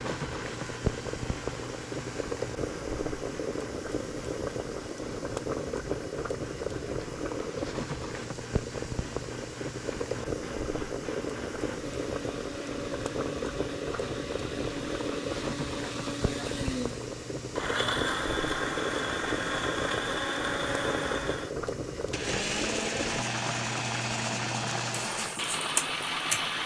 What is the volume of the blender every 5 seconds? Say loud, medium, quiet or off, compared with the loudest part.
quiet, quiet, medium, loud, loud, loud.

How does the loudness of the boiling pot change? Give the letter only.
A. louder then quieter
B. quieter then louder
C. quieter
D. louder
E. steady
E.